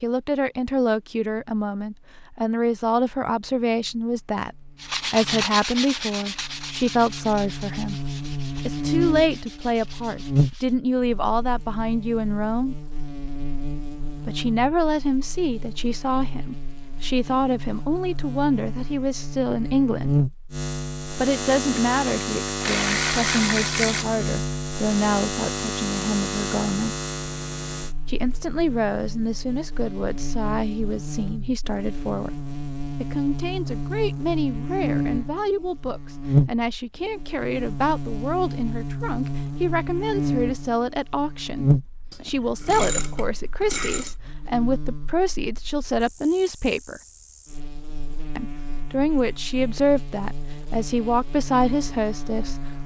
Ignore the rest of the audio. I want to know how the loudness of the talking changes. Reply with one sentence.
The loudness of the talking stays about the same.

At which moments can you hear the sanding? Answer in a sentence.
The sanding can be heard from 4.8 to 10.8 s.